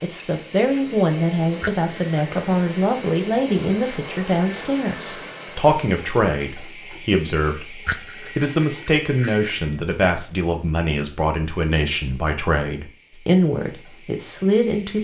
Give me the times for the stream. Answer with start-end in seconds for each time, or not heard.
not heard.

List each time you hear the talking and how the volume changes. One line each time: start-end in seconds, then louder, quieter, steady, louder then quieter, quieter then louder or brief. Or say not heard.
0.0-15.0 steady.